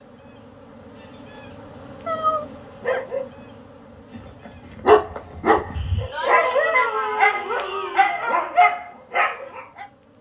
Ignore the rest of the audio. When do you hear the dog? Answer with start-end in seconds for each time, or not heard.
4.1-9.8.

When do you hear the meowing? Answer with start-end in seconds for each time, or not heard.
2.0-3.0, 5.8-8.2.